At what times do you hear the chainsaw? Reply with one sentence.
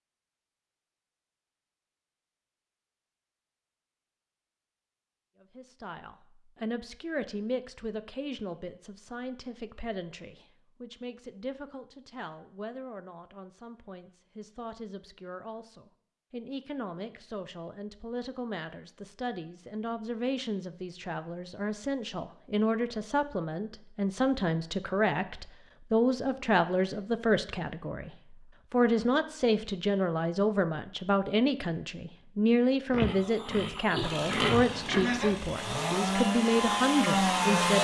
The chainsaw can be heard from 34.0 to 37.7 s.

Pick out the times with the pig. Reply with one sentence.
You can hear the pig from 32.9 to 35.4 s.